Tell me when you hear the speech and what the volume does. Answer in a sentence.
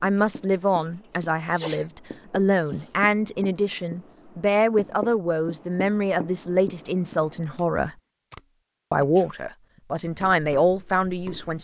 You can hear the speech from 0.0 to 8.0 s, at a steady volume; and briefly from 8.9 to 11.5 s.